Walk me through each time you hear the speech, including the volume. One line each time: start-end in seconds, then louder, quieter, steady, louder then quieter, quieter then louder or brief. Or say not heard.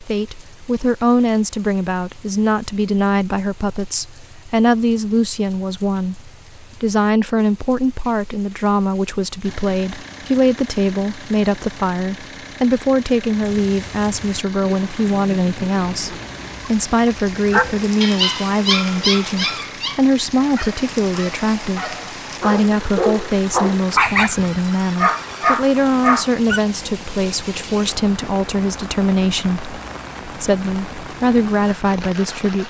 0.0-32.6 steady.